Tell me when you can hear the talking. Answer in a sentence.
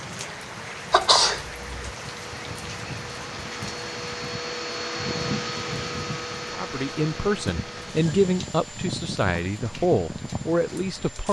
The talking can be heard from 6.5 to 11.2 s.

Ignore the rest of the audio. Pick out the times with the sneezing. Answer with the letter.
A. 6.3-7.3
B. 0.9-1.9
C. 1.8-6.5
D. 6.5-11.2
B.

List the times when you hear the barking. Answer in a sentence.
You can't hear the barking here.